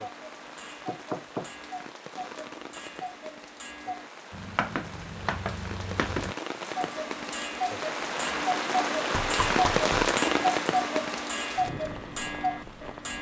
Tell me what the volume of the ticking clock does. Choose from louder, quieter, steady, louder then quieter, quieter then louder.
louder.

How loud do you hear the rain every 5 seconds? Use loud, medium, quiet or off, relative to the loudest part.
quiet, loud, loud.